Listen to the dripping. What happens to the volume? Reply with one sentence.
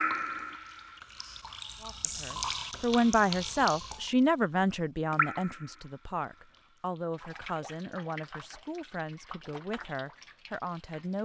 The loudness of the dripping goes down.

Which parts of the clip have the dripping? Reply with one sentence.
The dripping can be heard from 0.0 to 4.1 s and from 5.1 to 11.2 s.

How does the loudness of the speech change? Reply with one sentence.
The volume of the speech goes down.